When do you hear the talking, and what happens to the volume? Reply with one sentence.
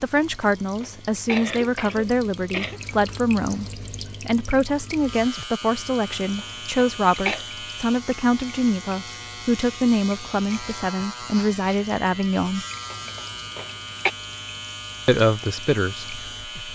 The talking can be heard from 0.0 to 12.7 s, at a steady volume; and briefly from 15.1 to 16.7 s.